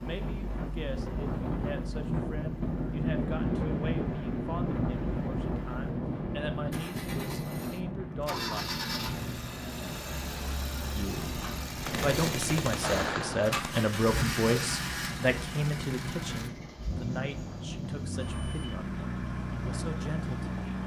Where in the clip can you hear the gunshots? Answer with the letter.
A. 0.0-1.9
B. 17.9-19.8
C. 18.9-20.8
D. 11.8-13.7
D.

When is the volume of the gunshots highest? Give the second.
13 s.